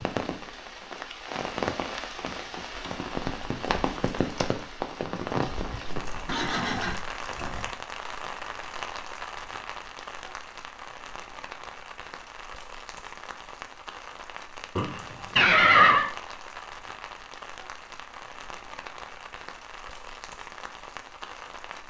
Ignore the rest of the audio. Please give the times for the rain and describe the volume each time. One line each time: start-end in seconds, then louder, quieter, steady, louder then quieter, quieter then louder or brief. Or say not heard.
0.0-21.8 quieter.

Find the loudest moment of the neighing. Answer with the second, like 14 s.
16 s.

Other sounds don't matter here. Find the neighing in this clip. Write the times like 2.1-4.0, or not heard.
6.2-7.7, 14.8-16.1.